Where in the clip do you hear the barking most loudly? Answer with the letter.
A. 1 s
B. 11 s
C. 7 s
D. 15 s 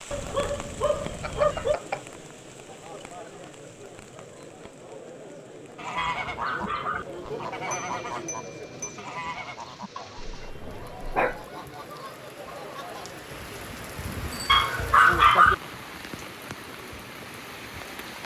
D.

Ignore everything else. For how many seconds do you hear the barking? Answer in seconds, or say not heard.
5 s.